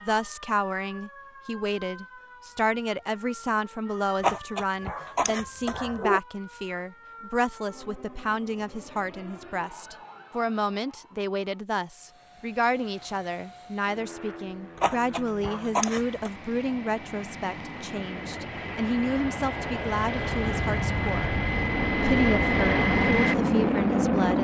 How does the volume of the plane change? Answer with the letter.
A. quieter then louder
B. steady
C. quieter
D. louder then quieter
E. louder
E.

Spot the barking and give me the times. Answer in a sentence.
The barking can be heard from 4.2 to 6.2 s and from 14.8 to 16.3 s.